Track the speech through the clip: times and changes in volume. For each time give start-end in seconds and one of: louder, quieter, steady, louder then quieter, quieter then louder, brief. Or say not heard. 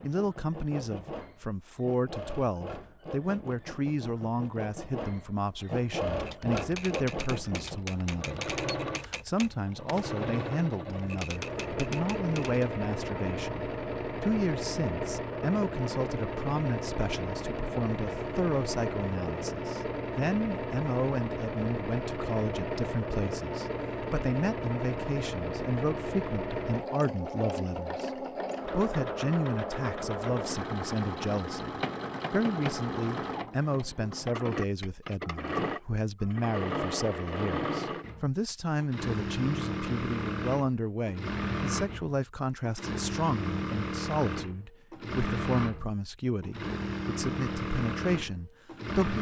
0.0-49.1 steady.